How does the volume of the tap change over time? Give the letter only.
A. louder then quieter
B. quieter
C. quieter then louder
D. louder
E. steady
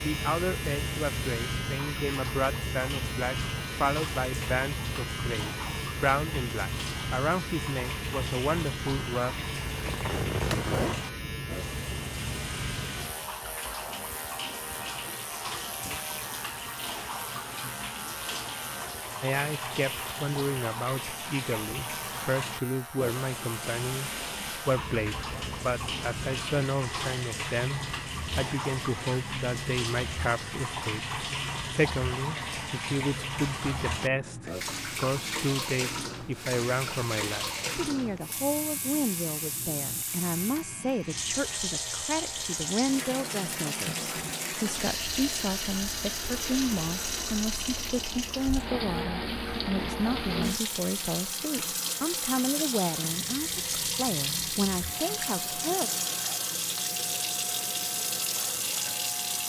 D.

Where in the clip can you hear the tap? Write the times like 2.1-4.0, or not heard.
0.0-59.4.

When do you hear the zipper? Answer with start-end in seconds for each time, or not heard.
9.7-11.0.